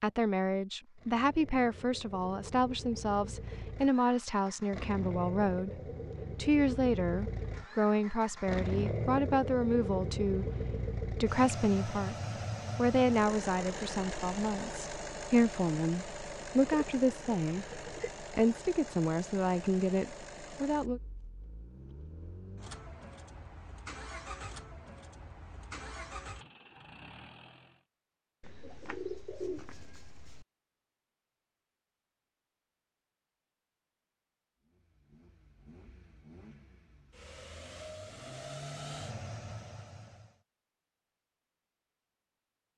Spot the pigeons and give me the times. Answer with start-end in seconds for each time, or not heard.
16.6-18.1, 28.4-30.4.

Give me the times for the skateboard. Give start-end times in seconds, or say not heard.
not heard.